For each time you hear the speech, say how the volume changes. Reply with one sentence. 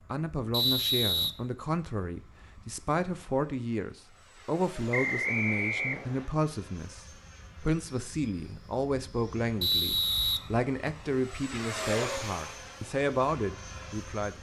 The speech can be heard from 0.1 to 14.3 s, at a steady volume.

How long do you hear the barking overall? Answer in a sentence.
The barking can't be heard in this clip.